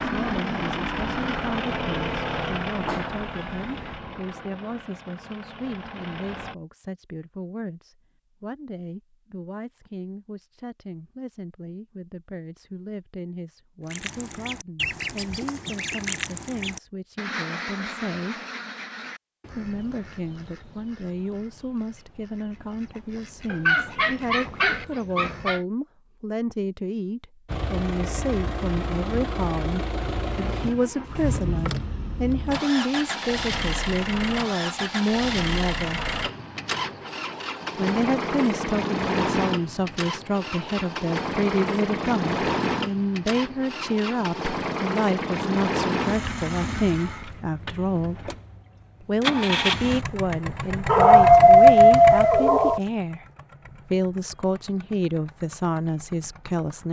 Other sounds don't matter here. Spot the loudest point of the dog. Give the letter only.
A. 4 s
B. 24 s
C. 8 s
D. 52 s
D.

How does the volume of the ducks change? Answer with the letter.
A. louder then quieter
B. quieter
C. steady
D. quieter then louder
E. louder
D.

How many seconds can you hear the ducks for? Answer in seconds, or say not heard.
12 s.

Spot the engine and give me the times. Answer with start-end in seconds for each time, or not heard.
0.0-6.5, 27.4-56.8.